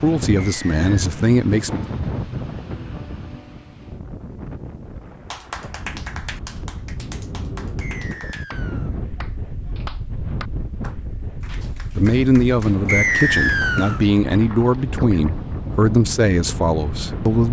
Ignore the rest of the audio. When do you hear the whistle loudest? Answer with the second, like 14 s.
13 s.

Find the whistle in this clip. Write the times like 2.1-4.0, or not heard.
0.3-1.1, 7.8-8.9, 12.8-14.0.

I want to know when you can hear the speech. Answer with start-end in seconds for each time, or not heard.
0.0-1.9, 11.9-17.4.